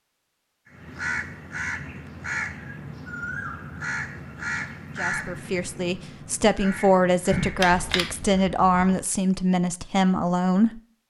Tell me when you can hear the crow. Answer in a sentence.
You can hear the crow from 0.7 to 8.4 s.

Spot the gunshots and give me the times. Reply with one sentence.
The gunshots can be heard from 7.3 to 9.0 s.